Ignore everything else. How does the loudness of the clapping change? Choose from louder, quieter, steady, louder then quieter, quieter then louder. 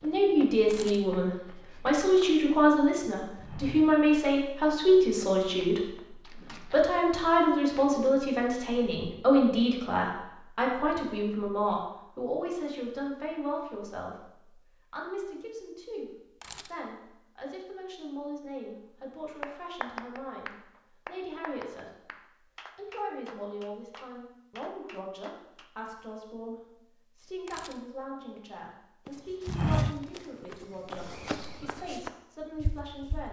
quieter.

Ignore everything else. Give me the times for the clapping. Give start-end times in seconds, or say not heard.
19.4-25.7.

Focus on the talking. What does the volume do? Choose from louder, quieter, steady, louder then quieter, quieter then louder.
quieter.